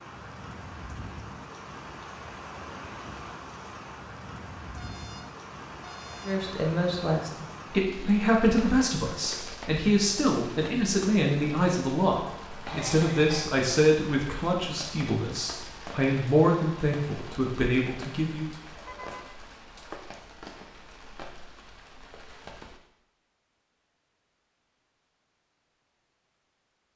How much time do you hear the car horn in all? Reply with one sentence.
You can hear the car horn for 2 seconds altogether.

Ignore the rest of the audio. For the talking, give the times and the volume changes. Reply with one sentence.
You can hear the talking from 6.2 to 18.5 s, at a steady volume.